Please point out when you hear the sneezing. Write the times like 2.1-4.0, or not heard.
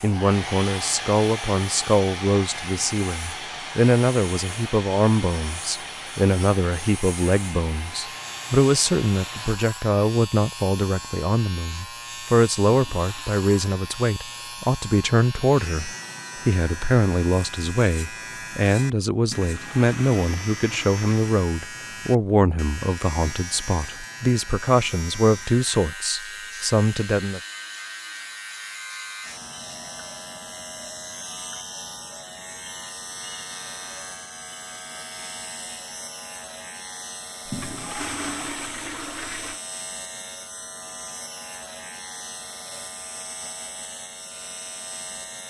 not heard.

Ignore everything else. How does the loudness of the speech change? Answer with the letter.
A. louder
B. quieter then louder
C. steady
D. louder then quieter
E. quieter
C.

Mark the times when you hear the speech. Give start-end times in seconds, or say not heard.
0.0-27.4.